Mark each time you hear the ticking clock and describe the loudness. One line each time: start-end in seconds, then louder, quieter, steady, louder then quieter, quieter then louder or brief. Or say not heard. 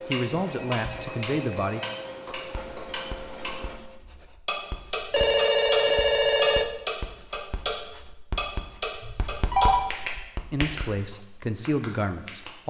0.0-7.8 louder
8.3-10.8 brief
11.7-12.5 brief.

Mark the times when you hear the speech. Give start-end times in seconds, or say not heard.
0.1-1.8, 10.5-12.6.